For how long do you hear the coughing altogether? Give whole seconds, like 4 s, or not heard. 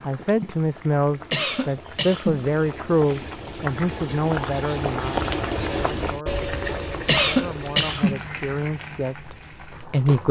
2 s.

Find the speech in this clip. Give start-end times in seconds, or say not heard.
0.0-10.2.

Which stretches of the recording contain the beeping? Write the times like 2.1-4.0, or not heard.
not heard.